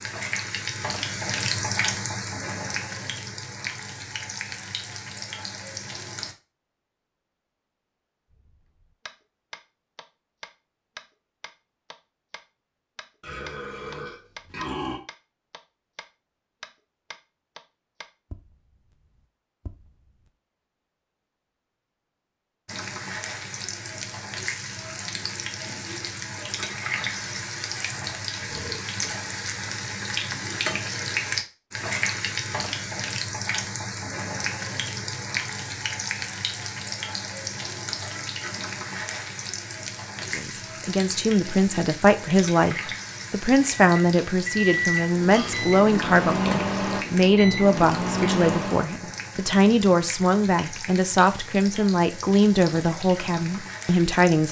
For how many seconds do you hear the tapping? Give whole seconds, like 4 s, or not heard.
12 s.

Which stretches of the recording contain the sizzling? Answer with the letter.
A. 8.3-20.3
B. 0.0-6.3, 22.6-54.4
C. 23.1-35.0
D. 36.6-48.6
B.